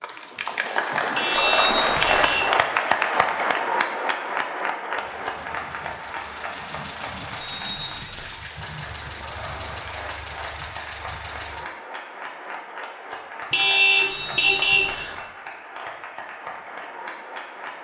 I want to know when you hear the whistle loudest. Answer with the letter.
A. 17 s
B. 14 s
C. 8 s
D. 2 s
D.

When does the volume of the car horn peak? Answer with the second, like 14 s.
14 s.